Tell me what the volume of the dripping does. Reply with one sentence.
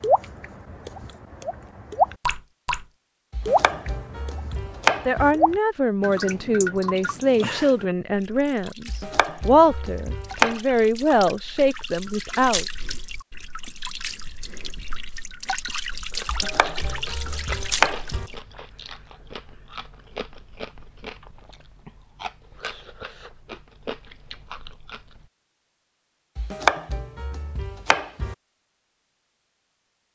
The loudness of the dripping goes down, then up.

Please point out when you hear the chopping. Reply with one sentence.
The chopping can be heard from 3.3 to 5.3 s, from 8.8 to 10.6 s, from 16.2 to 18.3 s and from 26.4 to 28.4 s.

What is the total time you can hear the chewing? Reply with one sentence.
The chewing can be heard for 9 seconds in total.